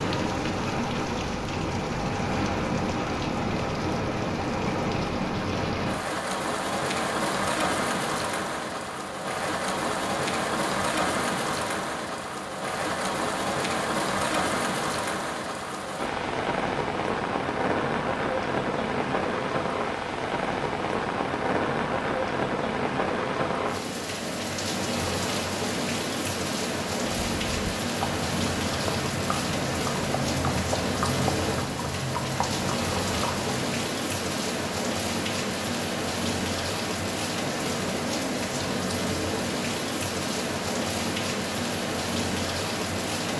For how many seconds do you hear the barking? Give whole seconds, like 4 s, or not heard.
not heard.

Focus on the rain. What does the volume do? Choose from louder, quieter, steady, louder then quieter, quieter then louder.
steady.